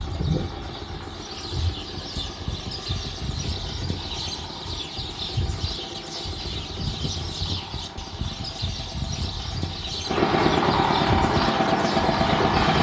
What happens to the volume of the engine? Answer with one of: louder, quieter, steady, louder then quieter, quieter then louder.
louder.